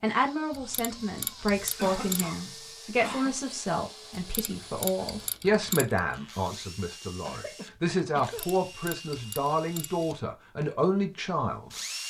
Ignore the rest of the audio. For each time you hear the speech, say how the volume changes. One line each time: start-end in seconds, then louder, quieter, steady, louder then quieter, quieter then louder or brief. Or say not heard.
0.0-11.7 steady.